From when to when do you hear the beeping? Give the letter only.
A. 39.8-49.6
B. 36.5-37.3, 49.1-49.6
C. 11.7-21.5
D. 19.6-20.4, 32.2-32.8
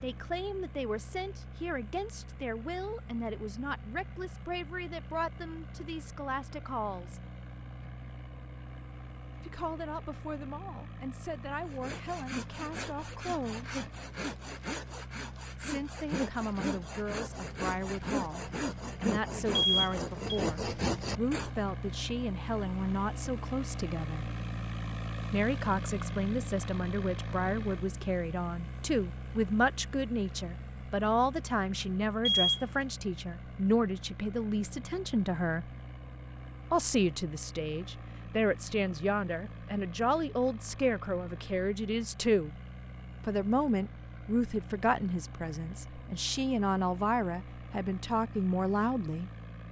D.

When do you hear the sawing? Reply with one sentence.
You can hear the sawing from 11.7 to 21.5 s.